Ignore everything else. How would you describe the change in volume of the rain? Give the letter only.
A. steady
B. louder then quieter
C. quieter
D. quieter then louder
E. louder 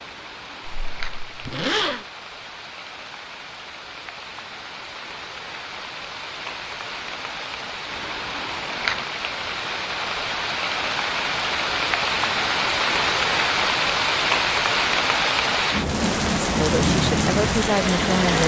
E.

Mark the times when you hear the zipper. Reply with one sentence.
You can hear the zipper from 0.8 to 2.0 s.